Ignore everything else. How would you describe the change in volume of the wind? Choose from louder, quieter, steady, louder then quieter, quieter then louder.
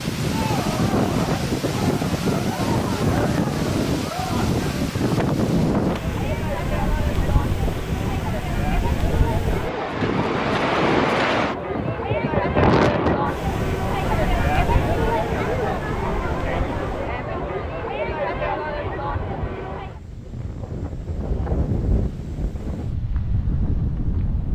quieter.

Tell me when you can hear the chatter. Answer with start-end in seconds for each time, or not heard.
0.3-20.0.